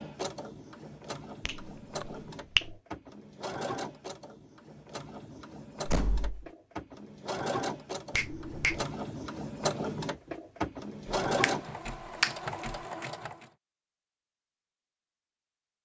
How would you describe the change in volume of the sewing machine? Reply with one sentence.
The loudness of the sewing machine goes up.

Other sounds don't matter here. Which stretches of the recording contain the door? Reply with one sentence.
You can hear the door from 5.8 to 6.5 s.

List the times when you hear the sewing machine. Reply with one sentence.
The sewing machine can be heard from 0.0 to 13.5 s.